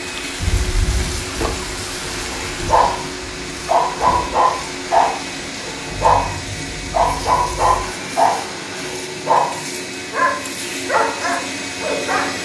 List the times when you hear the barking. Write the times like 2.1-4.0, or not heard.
2.1-12.4.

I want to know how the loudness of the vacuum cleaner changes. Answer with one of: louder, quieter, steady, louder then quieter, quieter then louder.
steady.